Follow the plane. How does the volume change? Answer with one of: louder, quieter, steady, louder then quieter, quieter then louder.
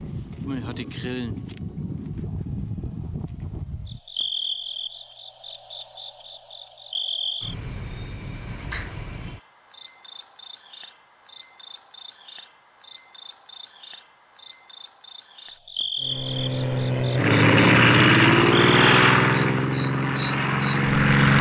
louder then quieter.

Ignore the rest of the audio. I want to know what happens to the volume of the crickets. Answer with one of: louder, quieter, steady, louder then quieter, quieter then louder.
louder.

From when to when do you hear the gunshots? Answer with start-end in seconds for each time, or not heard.
not heard.